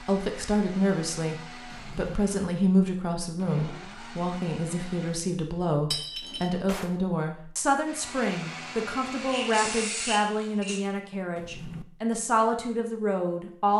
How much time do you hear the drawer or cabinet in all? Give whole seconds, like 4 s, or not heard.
2 s.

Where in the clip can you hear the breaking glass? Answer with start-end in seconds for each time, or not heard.
5.9-6.5.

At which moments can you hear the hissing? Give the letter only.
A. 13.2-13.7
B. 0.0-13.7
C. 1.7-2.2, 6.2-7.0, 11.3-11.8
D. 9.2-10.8
D.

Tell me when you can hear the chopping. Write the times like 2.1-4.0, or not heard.
not heard.